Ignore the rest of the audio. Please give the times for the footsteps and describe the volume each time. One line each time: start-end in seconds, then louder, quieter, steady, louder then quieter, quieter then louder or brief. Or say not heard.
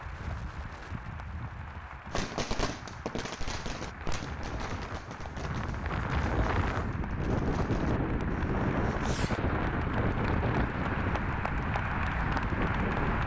not heard.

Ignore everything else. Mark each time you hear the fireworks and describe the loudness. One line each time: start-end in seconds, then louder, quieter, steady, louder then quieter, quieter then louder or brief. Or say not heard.
2.1-9.4 quieter.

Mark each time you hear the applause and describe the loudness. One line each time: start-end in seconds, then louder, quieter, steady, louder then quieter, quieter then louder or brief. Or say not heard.
0.0-13.2 louder.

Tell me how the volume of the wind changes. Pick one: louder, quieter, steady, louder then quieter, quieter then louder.
louder.